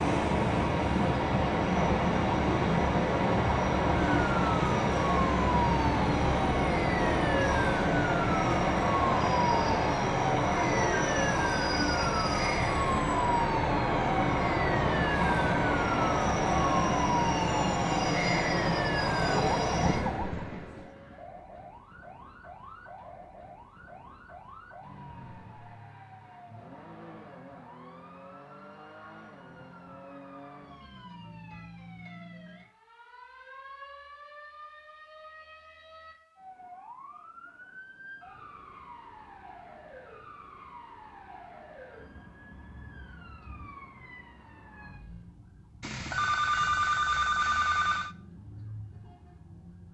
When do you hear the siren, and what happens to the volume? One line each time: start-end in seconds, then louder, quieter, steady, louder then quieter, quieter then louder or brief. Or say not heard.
4.0-49.8 quieter.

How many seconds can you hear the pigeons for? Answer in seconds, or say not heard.
not heard.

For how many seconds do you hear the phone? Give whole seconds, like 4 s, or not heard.
2 s.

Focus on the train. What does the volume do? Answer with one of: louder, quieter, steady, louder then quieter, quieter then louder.
steady.